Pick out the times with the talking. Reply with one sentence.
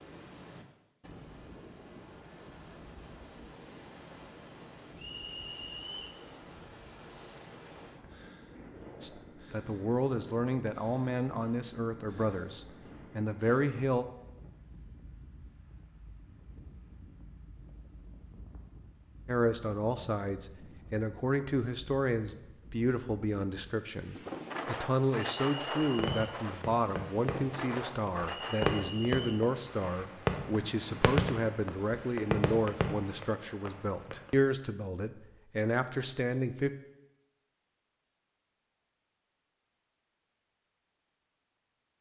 You can hear the talking from 9.0 to 14.1 s and from 19.2 to 36.7 s.